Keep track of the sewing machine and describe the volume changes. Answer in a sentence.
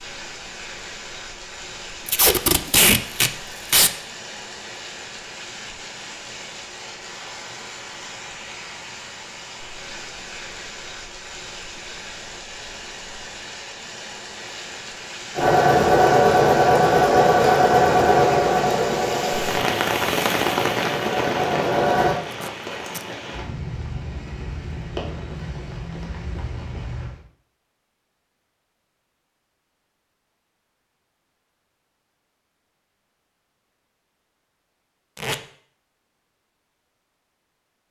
The loudness of the sewing machine goes down.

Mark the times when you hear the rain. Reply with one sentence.
You can hear the rain from 0.0 to 27.2 s.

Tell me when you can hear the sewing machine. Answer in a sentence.
The sewing machine can be heard from 15.3 to 22.1 s.